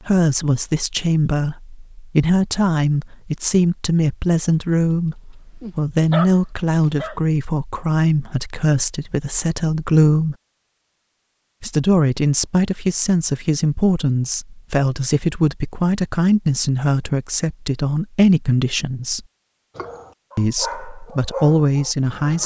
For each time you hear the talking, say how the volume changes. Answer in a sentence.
The talking can be heard from 0.1 to 10.3 s, at a steady volume; from 11.6 to 19.2 s, at a steady volume; and briefly from 20.4 to 22.4 s.